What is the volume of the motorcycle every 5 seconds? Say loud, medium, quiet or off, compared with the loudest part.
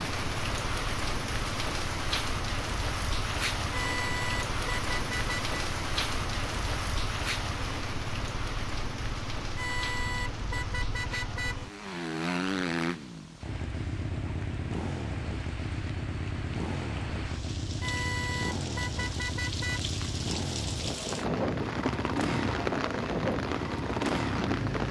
medium, medium, loud, loud, loud.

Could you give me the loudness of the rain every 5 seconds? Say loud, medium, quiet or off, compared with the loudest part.
loud, loud, quiet, medium, loud.